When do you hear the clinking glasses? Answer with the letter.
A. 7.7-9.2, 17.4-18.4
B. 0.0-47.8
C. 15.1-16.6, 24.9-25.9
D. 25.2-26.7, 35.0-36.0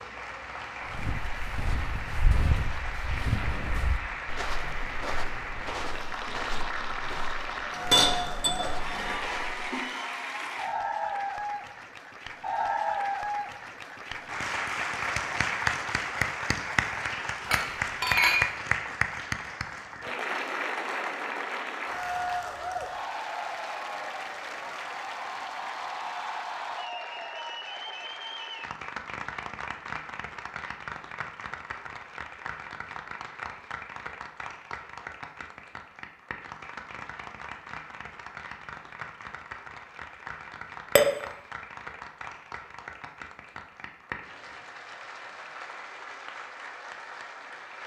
A.